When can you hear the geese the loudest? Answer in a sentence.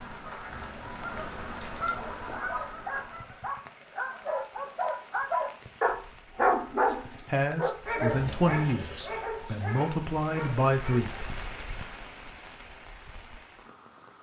The loudest moment of the geese is at 2 seconds.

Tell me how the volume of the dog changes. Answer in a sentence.
The loudness of the dog goes up, then down.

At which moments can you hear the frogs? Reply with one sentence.
The frogs can't be heard in this clip.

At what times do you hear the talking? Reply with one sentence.
You can hear the talking from 6.8 to 11.2 s.